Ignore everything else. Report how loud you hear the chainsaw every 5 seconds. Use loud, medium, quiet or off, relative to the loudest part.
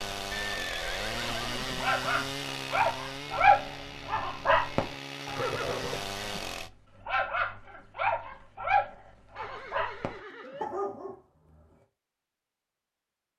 loud, loud, off.